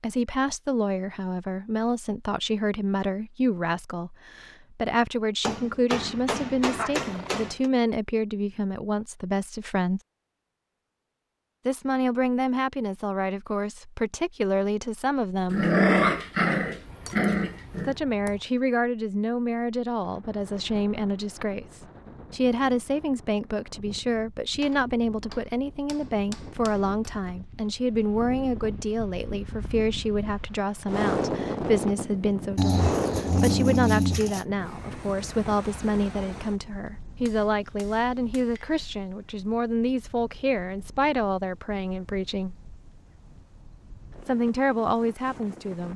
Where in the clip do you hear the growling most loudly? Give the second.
16 s.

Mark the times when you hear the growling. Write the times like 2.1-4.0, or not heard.
6.8-7.4, 15.5-17.9, 32.5-34.5.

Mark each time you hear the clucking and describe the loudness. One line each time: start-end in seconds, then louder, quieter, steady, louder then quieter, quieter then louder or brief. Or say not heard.
not heard.